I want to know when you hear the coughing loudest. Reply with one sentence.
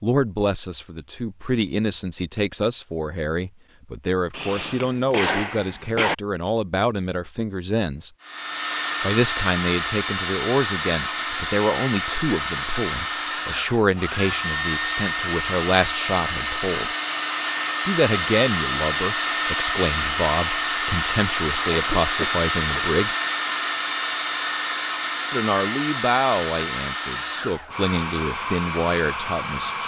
The loudest moment of the coughing is at 5 seconds.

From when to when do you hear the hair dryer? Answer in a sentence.
The hair dryer can be heard from 8.2 to 29.8 s.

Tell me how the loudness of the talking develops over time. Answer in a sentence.
The volume of the talking stays about the same.